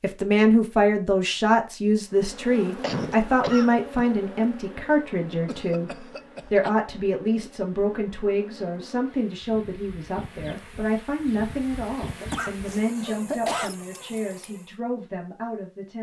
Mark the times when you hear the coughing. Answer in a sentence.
The coughing can be heard from 2.8 to 3.7 s, from 5.5 to 6.7 s and from 12.2 to 13.8 s.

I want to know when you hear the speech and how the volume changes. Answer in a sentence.
The speech can be heard from 0.0 to 15.9 s, getting quieter.